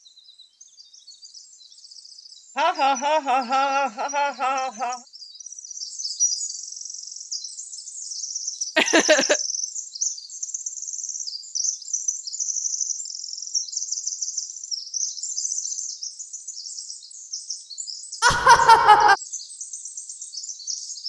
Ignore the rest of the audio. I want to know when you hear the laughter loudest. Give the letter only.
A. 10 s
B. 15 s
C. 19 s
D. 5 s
C.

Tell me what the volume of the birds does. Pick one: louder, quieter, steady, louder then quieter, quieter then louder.
louder then quieter.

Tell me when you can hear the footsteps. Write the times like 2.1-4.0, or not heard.
not heard.